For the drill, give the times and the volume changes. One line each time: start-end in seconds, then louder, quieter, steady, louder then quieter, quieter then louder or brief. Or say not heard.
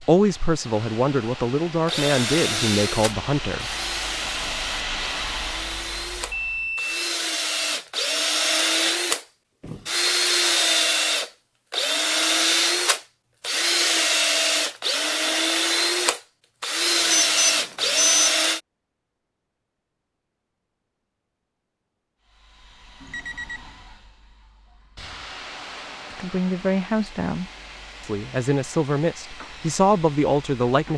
1.9-18.6 louder.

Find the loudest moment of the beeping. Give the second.
18 s.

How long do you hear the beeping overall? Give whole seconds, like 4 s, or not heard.
3 s.